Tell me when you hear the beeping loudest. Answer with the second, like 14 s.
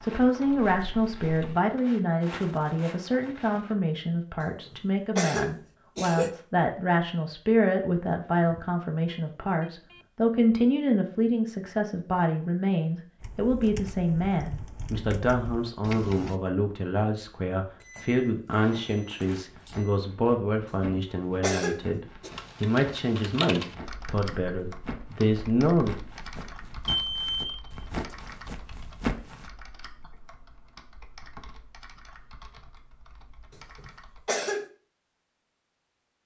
27 s.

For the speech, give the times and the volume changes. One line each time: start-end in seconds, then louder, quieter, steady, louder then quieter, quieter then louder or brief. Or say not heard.
0.0-25.9 steady.